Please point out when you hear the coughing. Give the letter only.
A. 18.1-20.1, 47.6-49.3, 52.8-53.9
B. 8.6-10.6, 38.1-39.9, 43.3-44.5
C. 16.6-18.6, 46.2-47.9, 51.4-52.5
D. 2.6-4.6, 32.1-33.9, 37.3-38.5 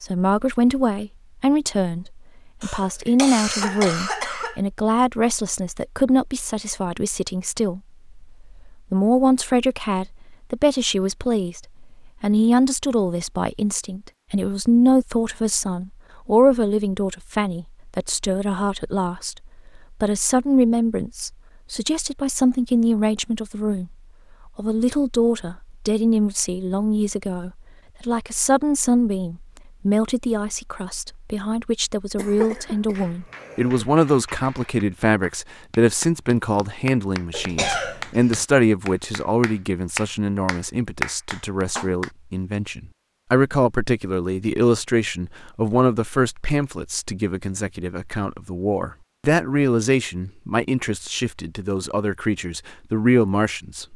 D.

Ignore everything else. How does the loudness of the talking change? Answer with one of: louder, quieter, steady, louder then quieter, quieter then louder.
steady.